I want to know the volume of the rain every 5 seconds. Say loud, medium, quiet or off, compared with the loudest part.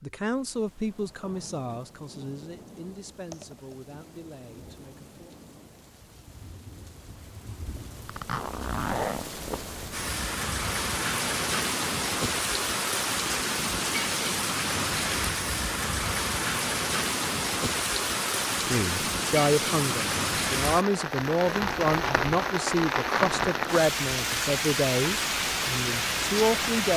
quiet, quiet, loud, loud, loud, loud.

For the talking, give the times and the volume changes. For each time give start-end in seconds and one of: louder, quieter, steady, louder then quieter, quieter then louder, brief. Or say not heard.
0.0-5.3 quieter
18.6-26.9 steady.